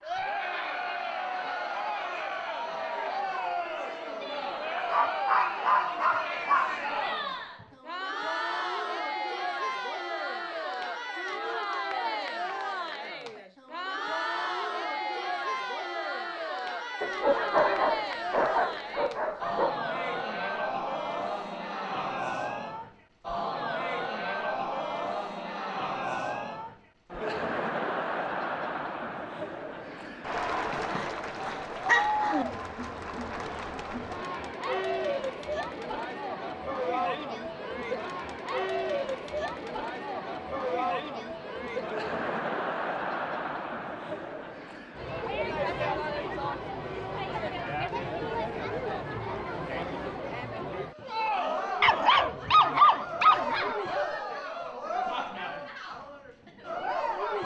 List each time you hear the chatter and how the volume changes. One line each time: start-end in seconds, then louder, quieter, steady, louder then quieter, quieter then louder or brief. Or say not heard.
0.0-57.4 steady.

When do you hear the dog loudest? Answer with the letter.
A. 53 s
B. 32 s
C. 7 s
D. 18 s
A.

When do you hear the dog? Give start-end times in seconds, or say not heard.
4.8-6.8, 17.0-19.8, 30.7-32.5, 51.8-53.8.